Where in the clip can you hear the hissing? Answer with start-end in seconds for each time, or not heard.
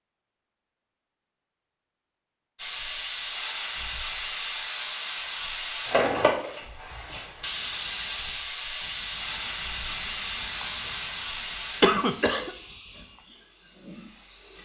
2.5-14.6.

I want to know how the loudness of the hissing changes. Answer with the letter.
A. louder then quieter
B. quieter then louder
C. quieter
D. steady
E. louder
C.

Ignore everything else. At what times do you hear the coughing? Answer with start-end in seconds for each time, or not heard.
11.8-12.5.